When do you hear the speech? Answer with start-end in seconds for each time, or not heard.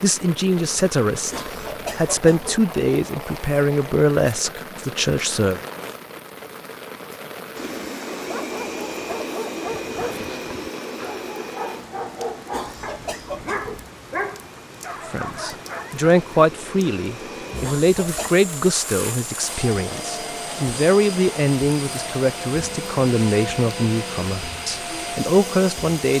0.0-5.6, 15.1-26.1.